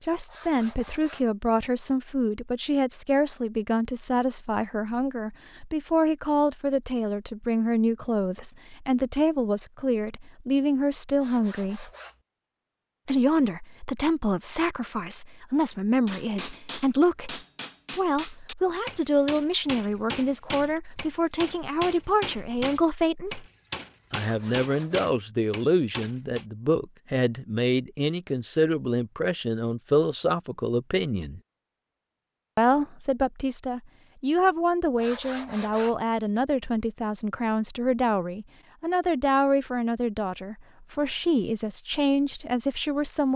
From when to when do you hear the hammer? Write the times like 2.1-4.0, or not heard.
16.1-26.4.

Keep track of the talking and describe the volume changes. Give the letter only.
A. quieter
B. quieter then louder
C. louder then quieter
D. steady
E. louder
D.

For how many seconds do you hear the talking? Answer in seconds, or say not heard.
40 s.